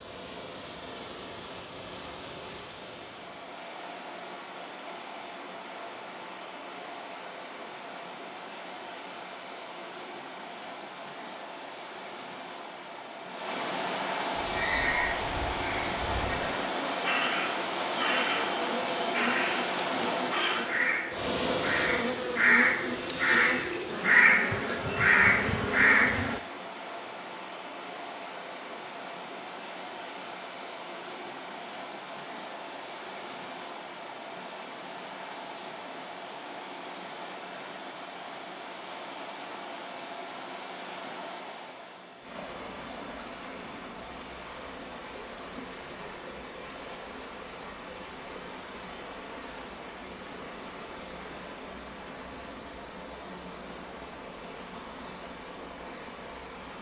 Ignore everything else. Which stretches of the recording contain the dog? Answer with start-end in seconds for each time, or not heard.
not heard.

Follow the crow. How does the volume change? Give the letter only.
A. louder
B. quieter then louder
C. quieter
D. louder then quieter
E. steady
A.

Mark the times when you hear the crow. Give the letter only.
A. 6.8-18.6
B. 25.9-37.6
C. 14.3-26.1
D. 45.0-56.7
C.